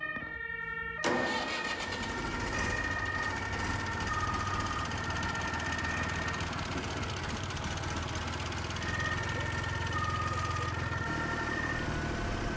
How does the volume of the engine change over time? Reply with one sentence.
The volume of the engine stays about the same.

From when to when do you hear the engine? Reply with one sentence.
You can hear the engine from 0.0 to 12.5 s.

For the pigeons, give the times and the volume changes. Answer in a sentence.
You can't hear the pigeons here.